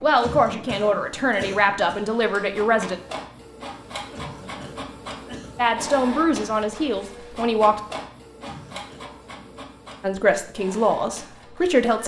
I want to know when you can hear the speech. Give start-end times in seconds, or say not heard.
0.0-3.0, 5.5-7.8, 10.0-12.0.